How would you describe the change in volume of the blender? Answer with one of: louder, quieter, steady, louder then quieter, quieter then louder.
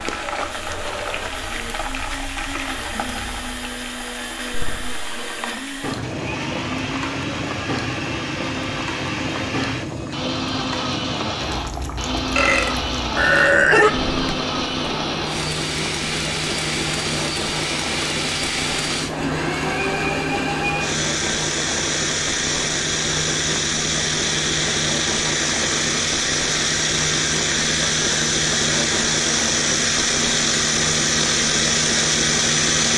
louder.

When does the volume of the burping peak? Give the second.
14 s.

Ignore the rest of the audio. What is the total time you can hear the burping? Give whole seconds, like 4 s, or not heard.
2 s.